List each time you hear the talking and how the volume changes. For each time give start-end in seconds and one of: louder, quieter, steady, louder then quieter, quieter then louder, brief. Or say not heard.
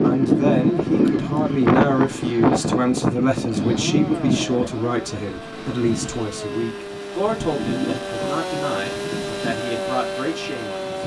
0.0-10.8 quieter.